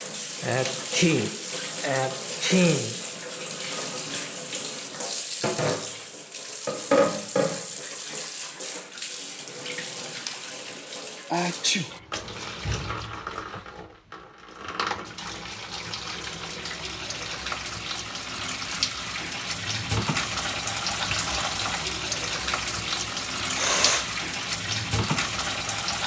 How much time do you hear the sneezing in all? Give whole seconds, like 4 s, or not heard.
4 s.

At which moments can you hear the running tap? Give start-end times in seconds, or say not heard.
0.0-26.0.